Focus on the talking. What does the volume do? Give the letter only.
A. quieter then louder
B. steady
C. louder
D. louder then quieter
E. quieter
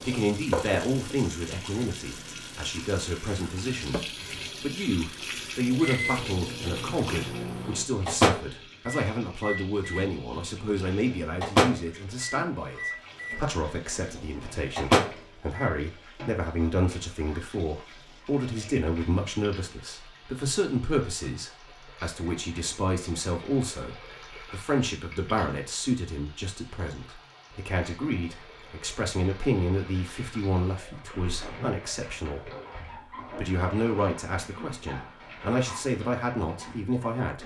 B.